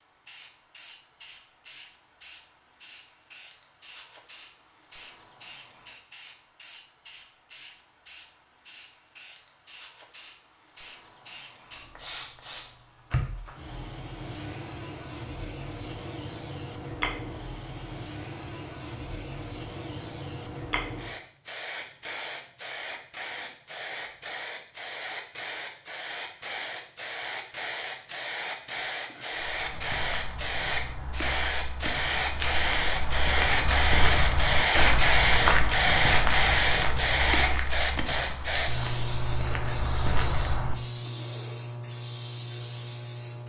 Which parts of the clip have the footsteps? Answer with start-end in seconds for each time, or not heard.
29.3-40.8.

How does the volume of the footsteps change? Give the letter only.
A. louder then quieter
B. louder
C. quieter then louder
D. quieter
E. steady
A.